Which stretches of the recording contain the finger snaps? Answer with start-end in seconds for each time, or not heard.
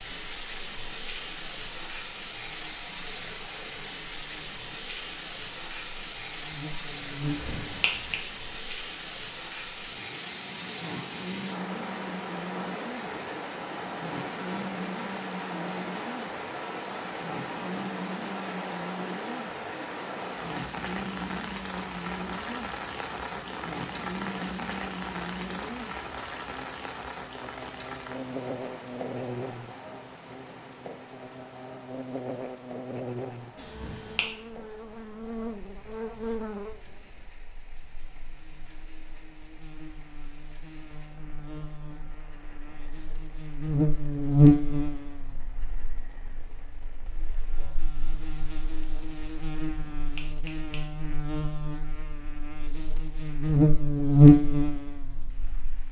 7.2-8.2, 33.5-34.2, 49.6-50.9.